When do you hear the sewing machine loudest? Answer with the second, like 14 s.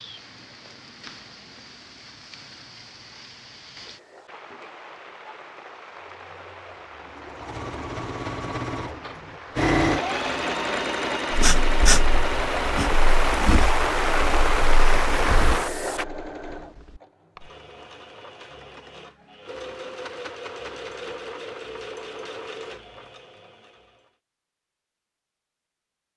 10 s.